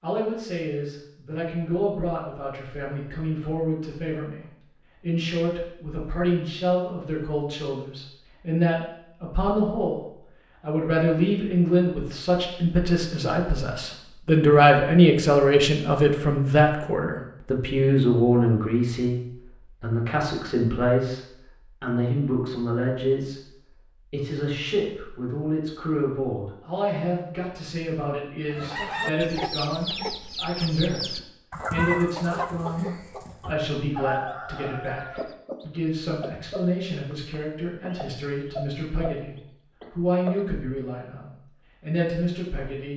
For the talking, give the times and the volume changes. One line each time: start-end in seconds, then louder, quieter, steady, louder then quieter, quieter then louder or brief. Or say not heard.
0.0-42.9 louder then quieter.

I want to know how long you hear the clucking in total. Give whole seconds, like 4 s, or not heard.
12 s.